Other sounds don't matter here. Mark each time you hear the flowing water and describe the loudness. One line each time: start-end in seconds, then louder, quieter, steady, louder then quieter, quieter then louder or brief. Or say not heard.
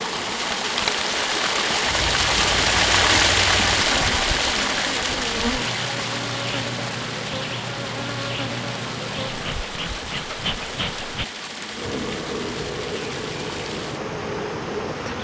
0.0-15.2 quieter.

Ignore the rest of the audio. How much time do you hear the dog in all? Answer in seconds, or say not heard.
not heard.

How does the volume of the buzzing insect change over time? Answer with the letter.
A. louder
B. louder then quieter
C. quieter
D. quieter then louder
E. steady
E.